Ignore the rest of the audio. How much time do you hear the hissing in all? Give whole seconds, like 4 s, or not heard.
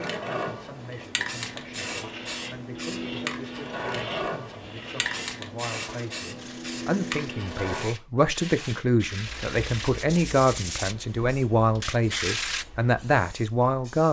14 s.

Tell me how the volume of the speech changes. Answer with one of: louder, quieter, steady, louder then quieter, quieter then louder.
louder.